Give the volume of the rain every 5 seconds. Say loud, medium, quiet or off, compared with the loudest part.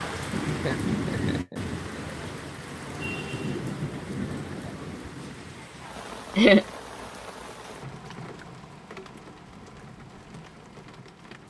loud, medium, quiet.